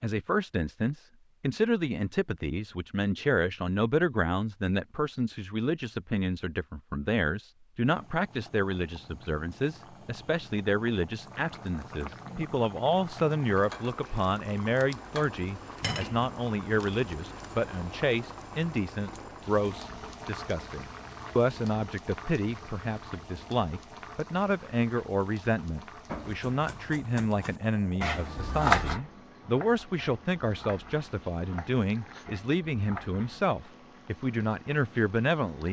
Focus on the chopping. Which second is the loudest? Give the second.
29 s.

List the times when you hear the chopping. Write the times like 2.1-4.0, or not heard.
26.1-33.5.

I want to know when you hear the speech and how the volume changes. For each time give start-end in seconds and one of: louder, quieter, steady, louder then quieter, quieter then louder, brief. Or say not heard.
0.0-35.6 steady.